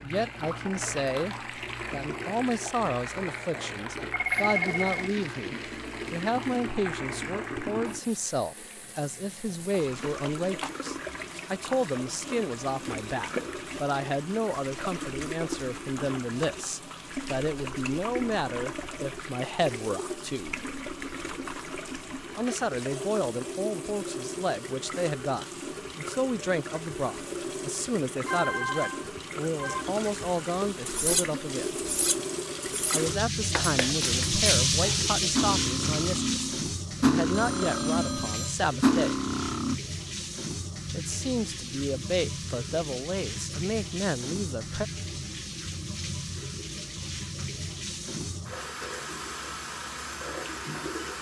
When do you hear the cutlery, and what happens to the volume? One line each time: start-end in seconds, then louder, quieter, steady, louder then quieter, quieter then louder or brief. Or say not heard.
30.9-39.8 louder.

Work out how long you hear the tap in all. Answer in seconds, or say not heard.
51 s.